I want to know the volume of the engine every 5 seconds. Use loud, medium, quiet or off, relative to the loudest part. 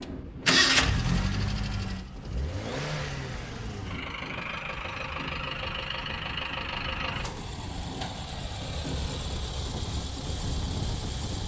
loud, medium, medium.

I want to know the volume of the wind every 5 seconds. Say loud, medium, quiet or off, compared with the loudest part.
medium, loud, loud.